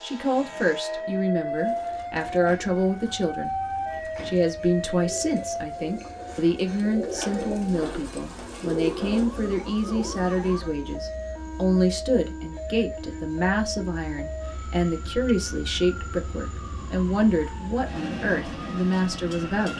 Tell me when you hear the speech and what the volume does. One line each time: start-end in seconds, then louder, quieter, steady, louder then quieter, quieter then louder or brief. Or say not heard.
0.0-19.7 steady.